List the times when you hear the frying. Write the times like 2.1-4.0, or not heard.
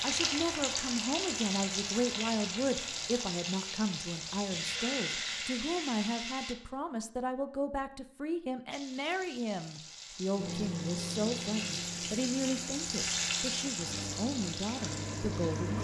0.0-6.5, 8.7-15.7.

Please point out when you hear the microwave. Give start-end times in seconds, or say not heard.
10.3-15.7.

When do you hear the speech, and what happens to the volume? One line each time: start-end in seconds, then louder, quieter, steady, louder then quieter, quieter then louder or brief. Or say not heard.
0.0-15.7 steady.